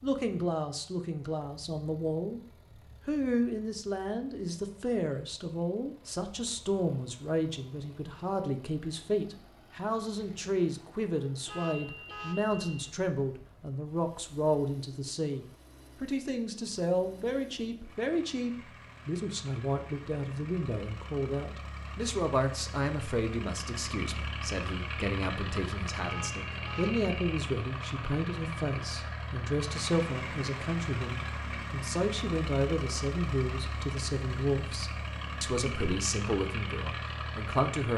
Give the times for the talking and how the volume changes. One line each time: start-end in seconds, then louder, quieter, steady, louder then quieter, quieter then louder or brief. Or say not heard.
0.0-2.4 brief
3.0-37.9 steady.